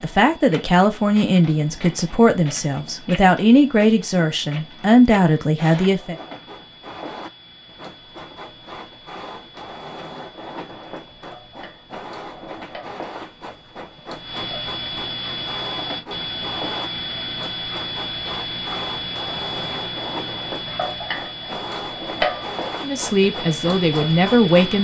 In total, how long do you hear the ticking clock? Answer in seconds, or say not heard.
25 s.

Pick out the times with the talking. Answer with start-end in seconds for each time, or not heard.
0.0-6.2, 22.8-24.8.